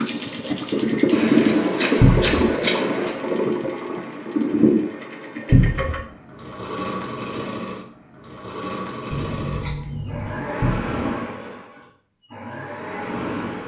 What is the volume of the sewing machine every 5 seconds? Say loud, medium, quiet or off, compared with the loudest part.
loud, medium, medium.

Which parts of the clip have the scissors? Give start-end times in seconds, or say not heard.
1.1-3.1, 9.1-10.5.